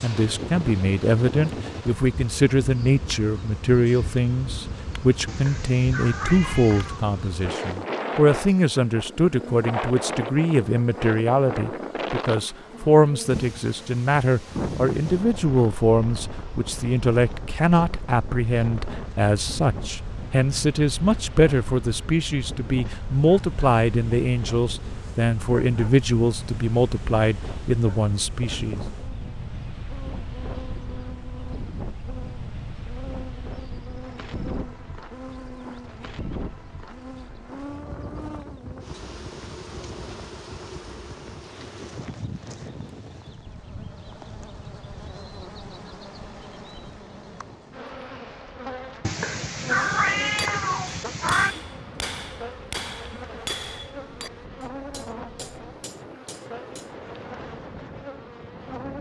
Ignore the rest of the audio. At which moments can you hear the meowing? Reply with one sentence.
The meowing can be heard from 5.2 to 7.0 s and from 49.0 to 51.5 s.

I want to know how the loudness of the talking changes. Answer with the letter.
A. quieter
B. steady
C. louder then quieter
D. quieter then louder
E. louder
B.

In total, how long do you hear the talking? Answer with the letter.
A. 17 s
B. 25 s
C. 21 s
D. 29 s
D.